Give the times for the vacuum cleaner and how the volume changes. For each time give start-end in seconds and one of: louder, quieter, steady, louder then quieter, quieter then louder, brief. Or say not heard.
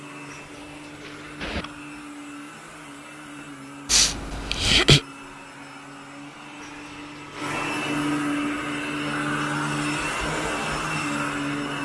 0.0-11.8 louder.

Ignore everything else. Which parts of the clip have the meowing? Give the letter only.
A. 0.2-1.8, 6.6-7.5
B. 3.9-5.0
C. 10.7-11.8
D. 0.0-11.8
A.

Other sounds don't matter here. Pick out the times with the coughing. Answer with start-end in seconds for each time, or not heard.
3.9-5.0.